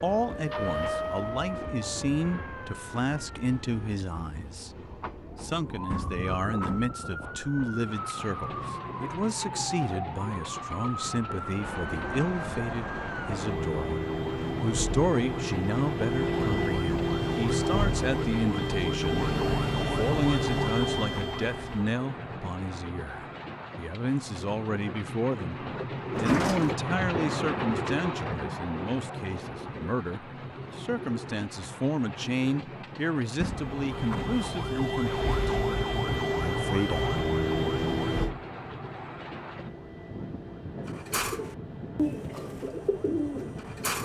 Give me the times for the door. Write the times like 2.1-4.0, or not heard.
5.8-7.0, 26.1-26.8, 33.4-34.4.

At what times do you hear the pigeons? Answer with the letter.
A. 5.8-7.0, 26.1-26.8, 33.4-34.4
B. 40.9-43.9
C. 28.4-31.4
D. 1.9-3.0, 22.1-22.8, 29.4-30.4
B.